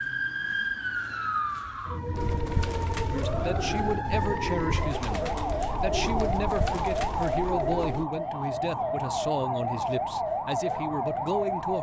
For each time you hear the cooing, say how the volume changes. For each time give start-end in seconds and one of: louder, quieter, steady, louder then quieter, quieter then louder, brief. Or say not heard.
2.1-8.1 steady.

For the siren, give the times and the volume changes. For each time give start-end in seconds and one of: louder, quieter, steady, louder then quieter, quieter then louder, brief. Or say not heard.
0.0-11.7 steady.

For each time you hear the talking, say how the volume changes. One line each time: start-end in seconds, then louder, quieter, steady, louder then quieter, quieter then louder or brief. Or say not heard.
3.1-11.7 steady.